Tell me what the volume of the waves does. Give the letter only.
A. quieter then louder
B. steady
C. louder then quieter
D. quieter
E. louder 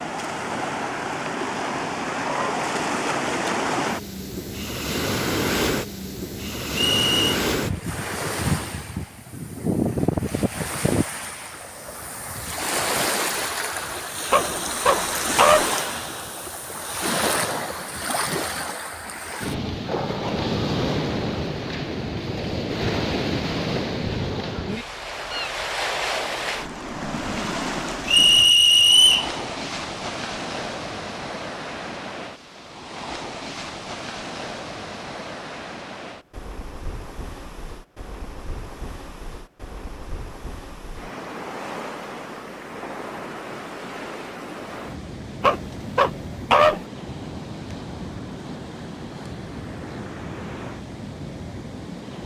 D.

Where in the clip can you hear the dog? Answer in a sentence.
The dog can be heard from 14.3 to 15.7 s and from 45.4 to 46.9 s.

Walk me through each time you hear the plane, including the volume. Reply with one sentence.
You can't hear the plane here.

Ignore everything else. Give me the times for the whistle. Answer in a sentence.
The whistle can be heard from 6.7 to 7.3 s and from 28.1 to 29.3 s.